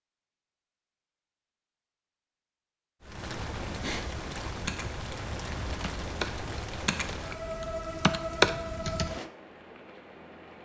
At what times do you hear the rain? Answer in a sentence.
You can hear the rain from 3.0 to 10.6 s.